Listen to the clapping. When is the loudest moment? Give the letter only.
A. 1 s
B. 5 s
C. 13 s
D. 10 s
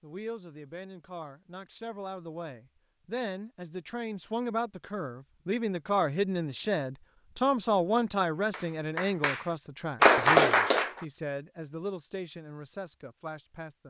D.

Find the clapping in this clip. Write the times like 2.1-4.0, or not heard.
8.5-10.9.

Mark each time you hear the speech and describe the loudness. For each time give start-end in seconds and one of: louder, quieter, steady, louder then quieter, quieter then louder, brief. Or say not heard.
0.0-13.8 louder then quieter.